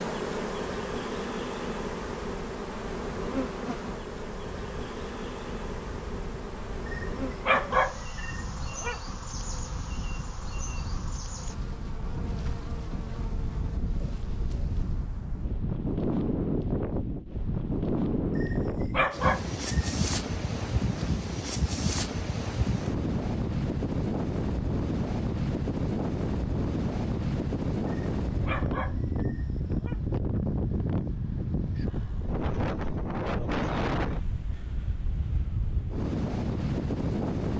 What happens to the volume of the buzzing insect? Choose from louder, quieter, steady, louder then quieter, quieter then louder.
quieter.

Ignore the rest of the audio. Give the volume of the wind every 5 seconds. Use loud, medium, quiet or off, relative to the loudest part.
quiet, quiet, medium, loud, loud, loud, loud, loud.